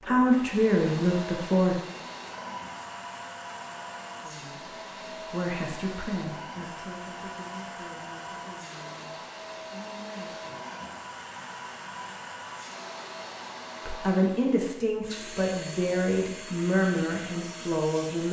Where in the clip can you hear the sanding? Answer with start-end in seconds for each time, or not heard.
not heard.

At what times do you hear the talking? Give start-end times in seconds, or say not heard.
0.0-1.8, 4.2-10.6, 13.8-18.2.